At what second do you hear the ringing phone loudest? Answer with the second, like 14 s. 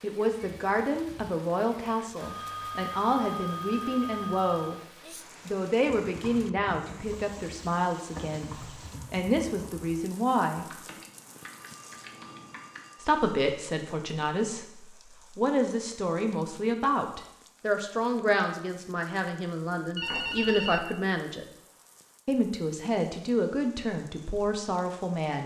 20 s.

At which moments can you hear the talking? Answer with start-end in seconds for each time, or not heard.
0.0-4.8, 5.5-10.8, 13.0-21.4, 22.2-25.4.